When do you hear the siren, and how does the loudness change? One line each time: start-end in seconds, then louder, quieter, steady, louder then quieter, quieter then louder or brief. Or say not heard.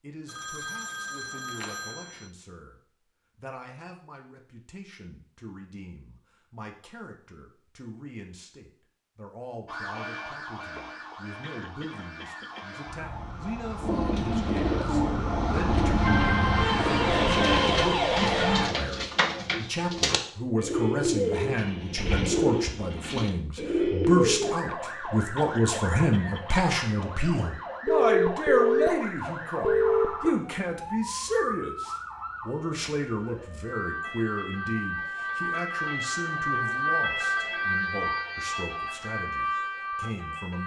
9.7-18.7 louder
24.4-40.6 louder.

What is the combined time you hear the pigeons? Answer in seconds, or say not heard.
11 s.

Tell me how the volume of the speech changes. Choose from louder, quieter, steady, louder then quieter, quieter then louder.
louder then quieter.